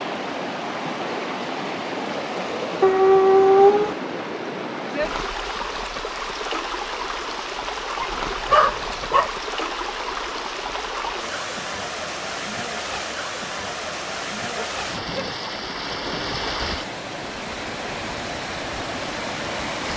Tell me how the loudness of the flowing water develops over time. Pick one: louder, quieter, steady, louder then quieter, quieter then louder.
steady.